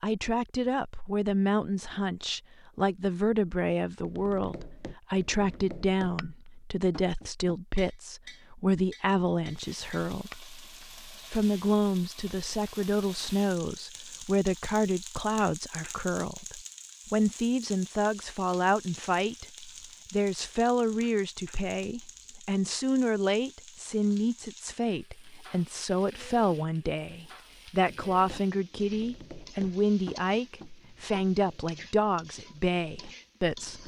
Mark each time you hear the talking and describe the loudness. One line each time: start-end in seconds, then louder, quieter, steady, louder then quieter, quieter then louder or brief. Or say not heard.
0.0-33.8 steady.